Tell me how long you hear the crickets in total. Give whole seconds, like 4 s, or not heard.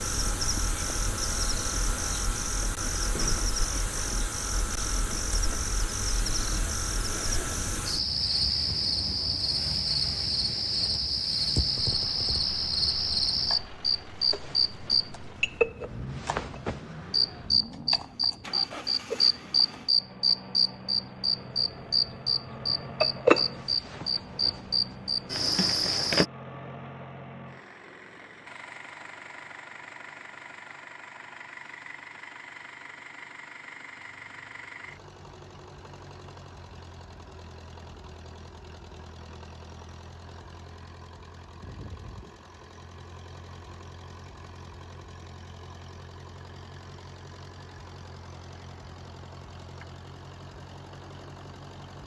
26 s.